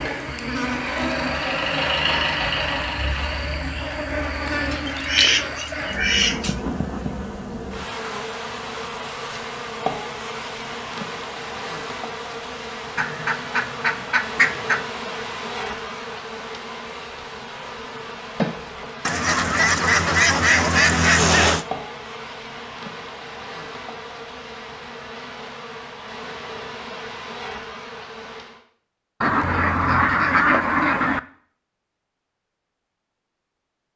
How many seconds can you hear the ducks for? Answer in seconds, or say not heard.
8 s.